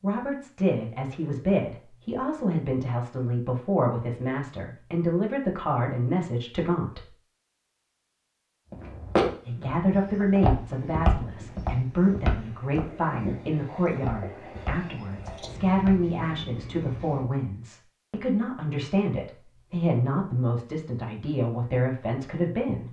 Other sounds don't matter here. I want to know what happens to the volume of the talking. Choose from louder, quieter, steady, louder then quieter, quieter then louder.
steady.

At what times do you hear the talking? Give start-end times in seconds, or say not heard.
0.0-7.1, 9.4-22.8.